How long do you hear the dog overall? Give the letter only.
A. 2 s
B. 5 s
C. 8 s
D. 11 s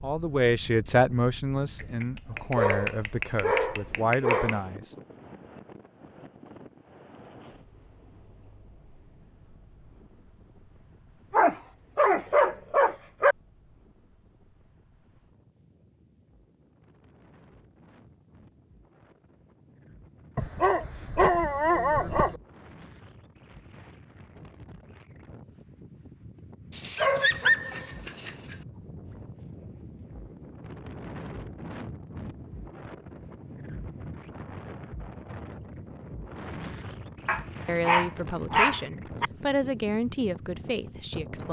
D.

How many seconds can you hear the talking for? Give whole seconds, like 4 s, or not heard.
9 s.